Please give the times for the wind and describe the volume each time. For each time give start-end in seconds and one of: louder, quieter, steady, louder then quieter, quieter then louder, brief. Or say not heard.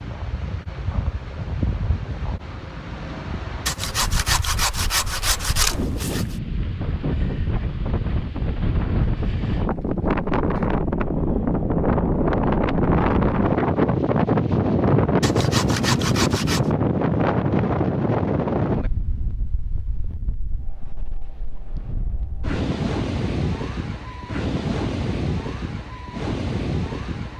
0.0-27.3 louder then quieter.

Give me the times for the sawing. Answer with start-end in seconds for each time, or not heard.
3.6-6.2, 15.2-16.7.